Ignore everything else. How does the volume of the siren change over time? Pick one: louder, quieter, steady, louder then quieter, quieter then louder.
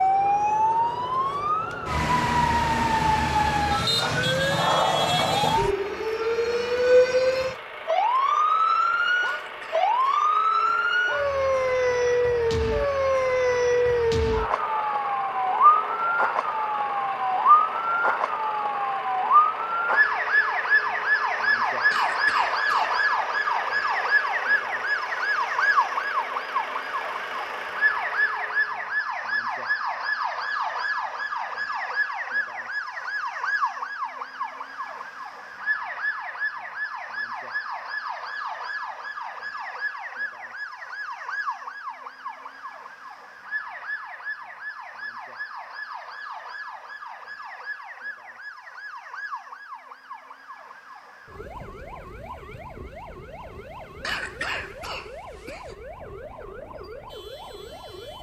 quieter.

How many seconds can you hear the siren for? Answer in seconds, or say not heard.
58 s.